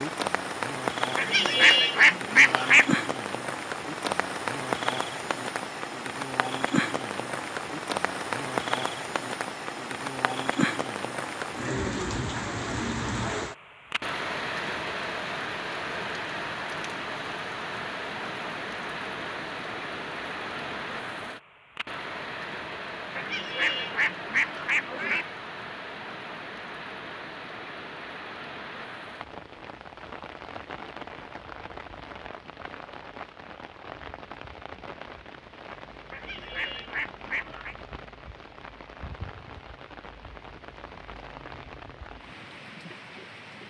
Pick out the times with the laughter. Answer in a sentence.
You can't hear the laughter here.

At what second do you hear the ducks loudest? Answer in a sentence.
The loudest moment of the ducks is at 2 seconds.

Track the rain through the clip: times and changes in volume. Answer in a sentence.
You can hear the rain from 0.0 to 43.6 s, getting quieter.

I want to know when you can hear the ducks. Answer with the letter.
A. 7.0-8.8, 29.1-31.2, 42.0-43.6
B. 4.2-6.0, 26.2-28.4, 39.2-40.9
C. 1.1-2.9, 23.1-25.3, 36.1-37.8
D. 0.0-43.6
C.